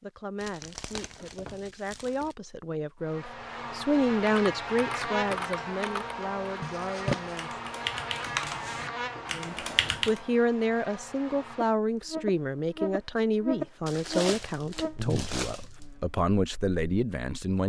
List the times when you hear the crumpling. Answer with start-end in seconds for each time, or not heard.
0.4-2.4, 6.6-7.5, 13.8-15.8.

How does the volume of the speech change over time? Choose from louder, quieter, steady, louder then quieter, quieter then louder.
louder.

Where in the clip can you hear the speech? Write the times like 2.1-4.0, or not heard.
0.0-7.6, 9.3-17.6.